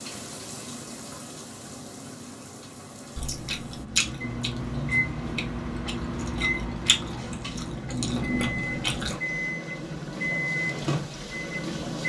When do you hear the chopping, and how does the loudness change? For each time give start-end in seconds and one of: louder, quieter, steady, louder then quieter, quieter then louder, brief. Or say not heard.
not heard.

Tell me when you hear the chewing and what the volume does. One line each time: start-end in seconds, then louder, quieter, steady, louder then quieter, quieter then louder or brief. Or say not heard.
3.1-9.2 quieter then louder.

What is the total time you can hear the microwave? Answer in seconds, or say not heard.
8 s.